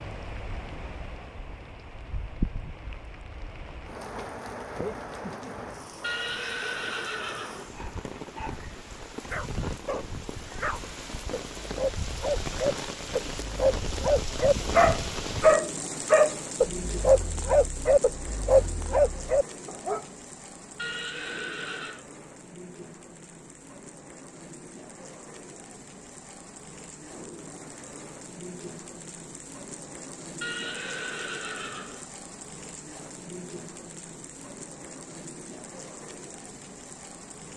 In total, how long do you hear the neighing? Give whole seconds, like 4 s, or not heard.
5 s.